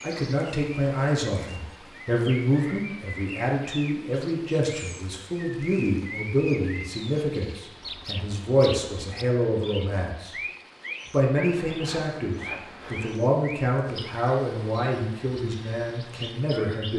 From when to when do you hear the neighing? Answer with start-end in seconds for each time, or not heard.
not heard.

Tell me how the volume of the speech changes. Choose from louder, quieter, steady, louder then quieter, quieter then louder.
steady.